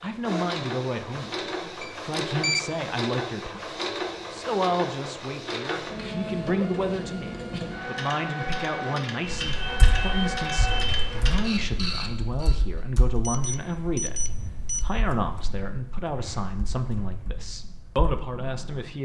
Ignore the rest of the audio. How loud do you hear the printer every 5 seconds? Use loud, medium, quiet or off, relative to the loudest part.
loud, loud, loud, off.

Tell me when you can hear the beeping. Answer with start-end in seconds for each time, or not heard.
1.8-2.8, 9.2-11.2, 13.2-14.8.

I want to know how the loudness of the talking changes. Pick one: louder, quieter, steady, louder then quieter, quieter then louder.
steady.